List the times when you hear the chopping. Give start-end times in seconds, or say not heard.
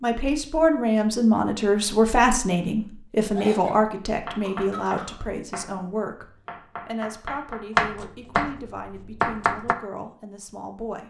4.2-9.8.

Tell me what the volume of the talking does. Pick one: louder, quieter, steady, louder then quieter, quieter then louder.
quieter.